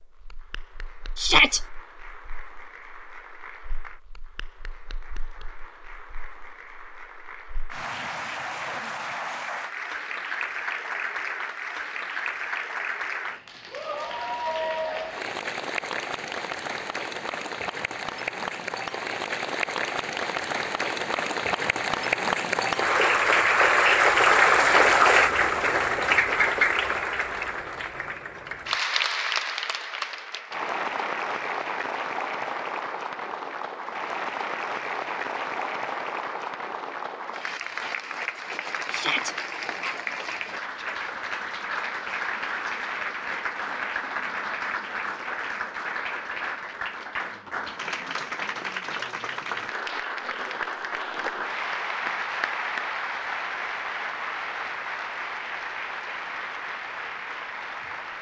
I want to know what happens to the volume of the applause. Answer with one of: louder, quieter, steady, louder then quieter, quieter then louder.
louder then quieter.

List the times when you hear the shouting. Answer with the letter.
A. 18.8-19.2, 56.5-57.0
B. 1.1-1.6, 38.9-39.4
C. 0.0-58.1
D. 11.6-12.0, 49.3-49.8
B.